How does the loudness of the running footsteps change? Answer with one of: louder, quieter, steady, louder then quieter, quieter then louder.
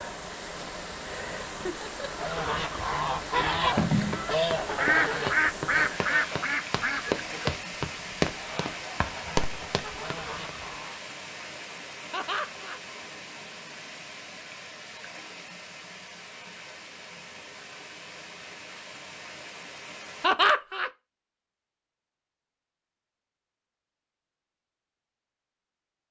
louder.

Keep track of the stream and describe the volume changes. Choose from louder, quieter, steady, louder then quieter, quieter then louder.
quieter.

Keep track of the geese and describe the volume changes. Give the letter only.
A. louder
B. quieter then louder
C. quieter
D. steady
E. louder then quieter
C.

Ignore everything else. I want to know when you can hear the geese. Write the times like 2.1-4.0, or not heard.
2.0-11.0.